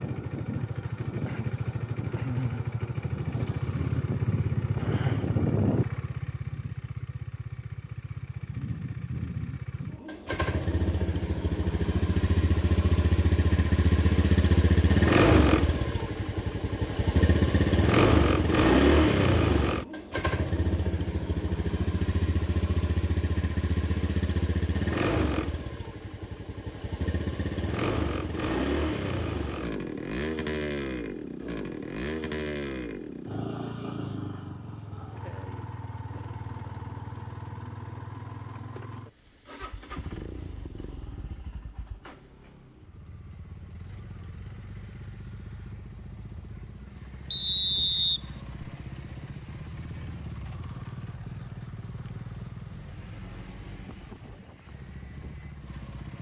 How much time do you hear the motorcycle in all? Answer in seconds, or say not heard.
56 s.